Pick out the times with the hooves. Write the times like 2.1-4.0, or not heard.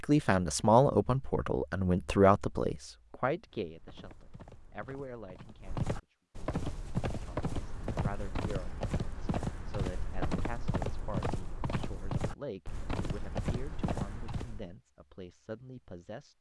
3.5-14.8.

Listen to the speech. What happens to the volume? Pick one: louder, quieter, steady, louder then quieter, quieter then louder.
quieter.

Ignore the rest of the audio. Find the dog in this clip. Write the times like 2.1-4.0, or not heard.
not heard.